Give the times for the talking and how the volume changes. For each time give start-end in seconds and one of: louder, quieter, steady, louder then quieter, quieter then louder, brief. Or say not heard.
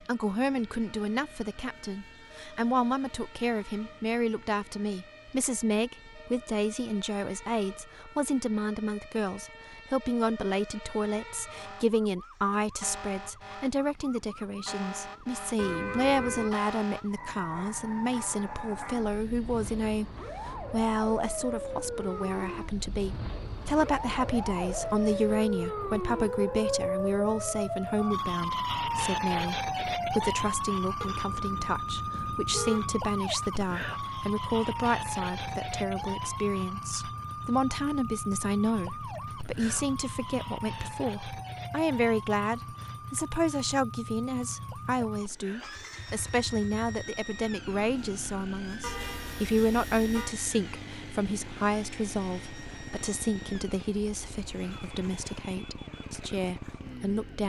0.1-57.4 steady.